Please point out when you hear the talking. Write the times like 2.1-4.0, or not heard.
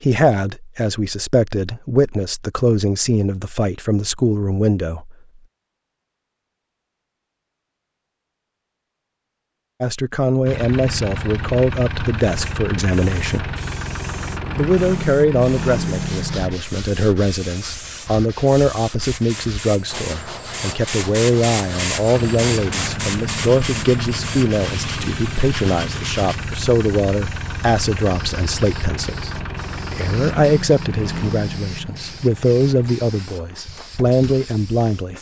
0.0-5.2, 9.8-13.6, 14.6-35.1.